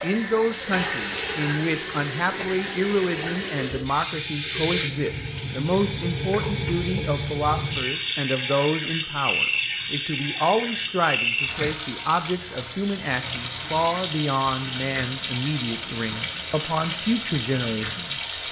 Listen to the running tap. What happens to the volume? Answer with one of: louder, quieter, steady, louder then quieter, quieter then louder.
steady.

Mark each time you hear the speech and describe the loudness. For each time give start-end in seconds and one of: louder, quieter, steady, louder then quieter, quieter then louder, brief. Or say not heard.
0.0-18.4 steady.